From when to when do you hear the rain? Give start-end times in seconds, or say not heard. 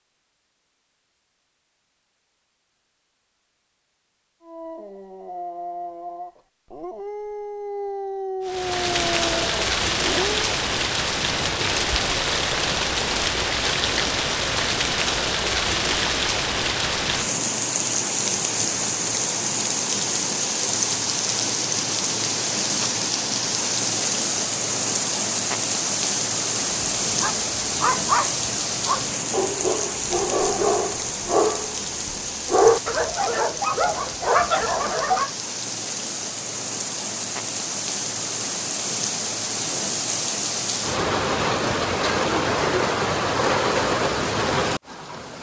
8.4-45.3.